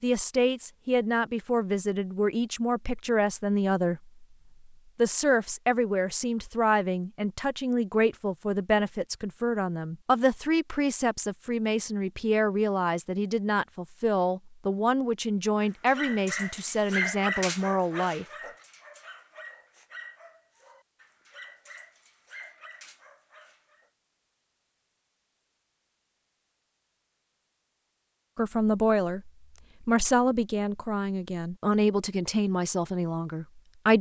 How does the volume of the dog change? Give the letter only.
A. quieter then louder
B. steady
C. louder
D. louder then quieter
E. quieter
E.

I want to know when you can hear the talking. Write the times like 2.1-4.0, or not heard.
0.0-4.1, 5.0-18.2, 28.4-33.9.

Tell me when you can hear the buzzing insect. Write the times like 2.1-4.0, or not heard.
not heard.